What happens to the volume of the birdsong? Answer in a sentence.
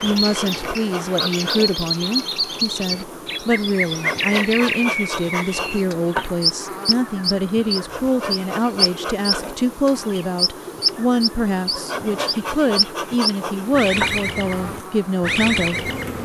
The loudness of the birdsong stays about the same.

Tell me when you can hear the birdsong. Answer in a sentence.
The birdsong can be heard from 0.0 to 16.2 s.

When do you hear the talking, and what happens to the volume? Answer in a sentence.
The talking can be heard from 0.0 to 16.2 s, at a steady volume.